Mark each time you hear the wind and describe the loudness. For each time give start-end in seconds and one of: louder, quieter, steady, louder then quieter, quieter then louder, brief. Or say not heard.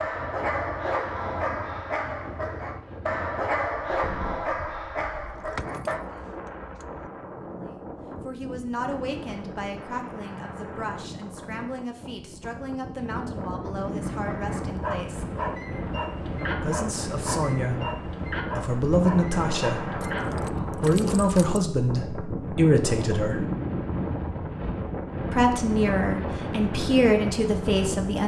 0.0-28.2 louder.